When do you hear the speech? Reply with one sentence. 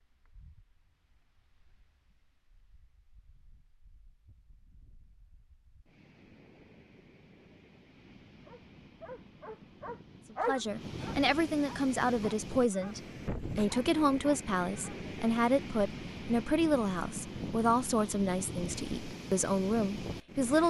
You can hear the speech from 10.3 to 20.6 s.